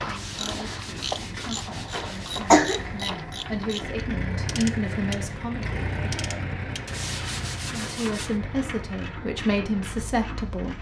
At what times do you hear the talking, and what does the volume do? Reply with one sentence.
You can hear the talking from 0.0 to 5.7 s, getting louder; and briefly from 7.8 to 10.7 s.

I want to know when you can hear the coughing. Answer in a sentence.
The coughing can be heard from 1.9 to 3.0 s.